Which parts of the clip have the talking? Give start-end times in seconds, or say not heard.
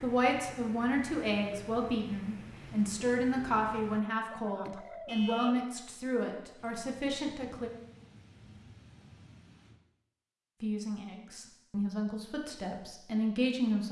0.0-7.7, 10.6-13.8.